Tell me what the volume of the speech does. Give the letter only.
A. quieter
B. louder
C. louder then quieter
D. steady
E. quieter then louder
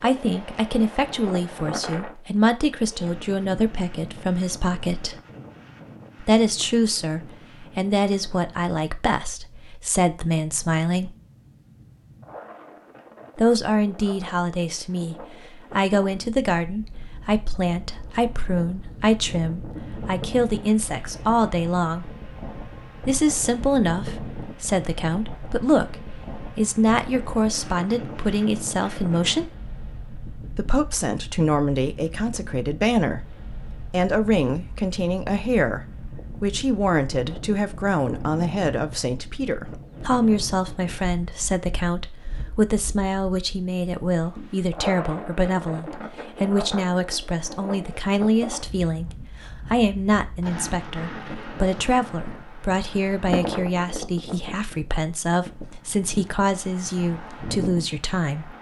D.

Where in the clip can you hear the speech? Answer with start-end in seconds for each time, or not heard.
0.0-5.2, 6.2-11.1, 13.3-22.1, 23.1-29.6, 30.6-58.5.